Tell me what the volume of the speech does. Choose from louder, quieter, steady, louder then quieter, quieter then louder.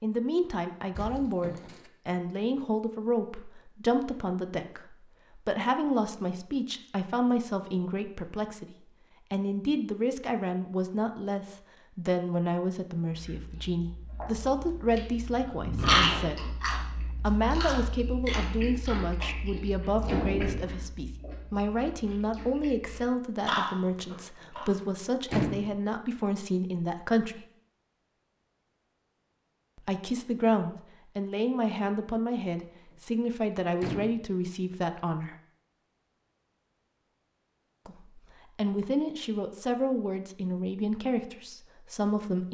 steady.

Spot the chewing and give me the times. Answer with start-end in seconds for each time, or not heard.
13.1-24.7.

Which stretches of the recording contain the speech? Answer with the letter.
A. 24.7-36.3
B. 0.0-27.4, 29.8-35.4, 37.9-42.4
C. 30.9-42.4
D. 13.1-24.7
B.